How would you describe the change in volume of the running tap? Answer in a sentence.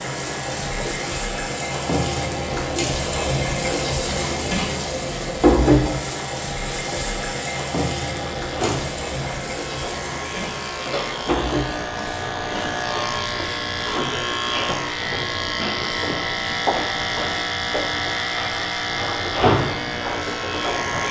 The volume of the running tap goes down.